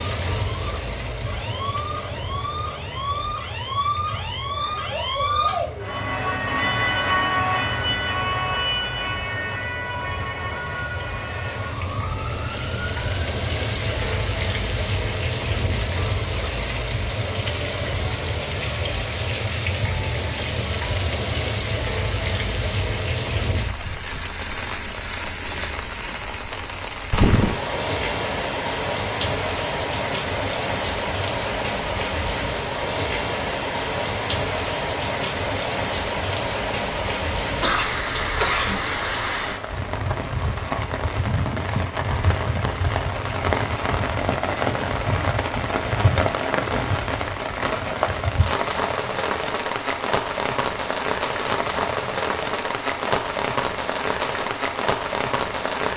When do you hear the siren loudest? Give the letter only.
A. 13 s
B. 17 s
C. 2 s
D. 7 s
D.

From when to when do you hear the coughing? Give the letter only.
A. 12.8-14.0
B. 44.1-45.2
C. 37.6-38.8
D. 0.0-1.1
C.